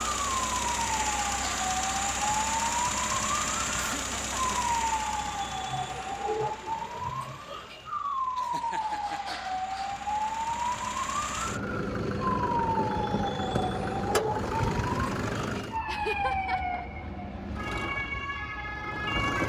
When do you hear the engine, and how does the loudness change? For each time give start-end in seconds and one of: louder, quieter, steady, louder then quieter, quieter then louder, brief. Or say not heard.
0.0-15.8 quieter then louder
17.5-19.4 brief.